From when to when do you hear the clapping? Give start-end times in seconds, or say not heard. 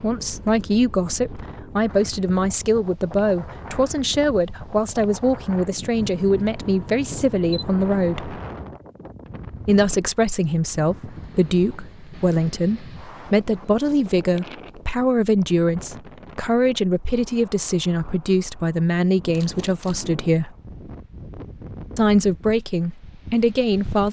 not heard.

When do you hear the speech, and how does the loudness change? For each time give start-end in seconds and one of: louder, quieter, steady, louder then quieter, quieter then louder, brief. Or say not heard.
0.0-8.4 steady
9.7-20.5 steady
21.9-24.0 brief.